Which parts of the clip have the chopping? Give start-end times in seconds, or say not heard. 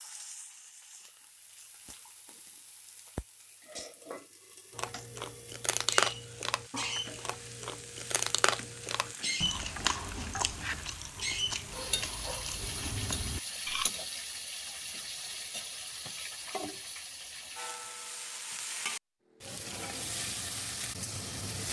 not heard.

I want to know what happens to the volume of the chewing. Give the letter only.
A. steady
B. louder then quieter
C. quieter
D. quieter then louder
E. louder
C.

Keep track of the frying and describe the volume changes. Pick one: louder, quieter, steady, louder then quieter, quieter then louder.
louder.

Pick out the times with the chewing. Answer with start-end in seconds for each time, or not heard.
4.8-13.9.